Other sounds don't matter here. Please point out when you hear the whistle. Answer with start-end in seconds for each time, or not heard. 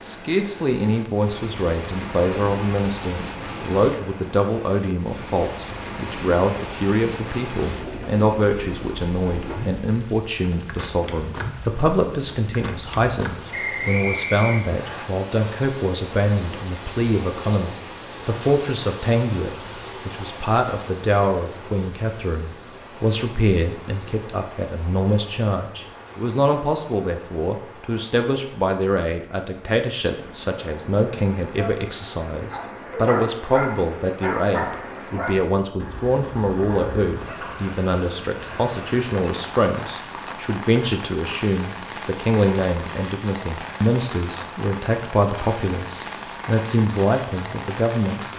13.5-15.1.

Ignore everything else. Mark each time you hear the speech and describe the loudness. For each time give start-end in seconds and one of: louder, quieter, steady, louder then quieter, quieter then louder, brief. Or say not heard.
0.0-48.2 steady.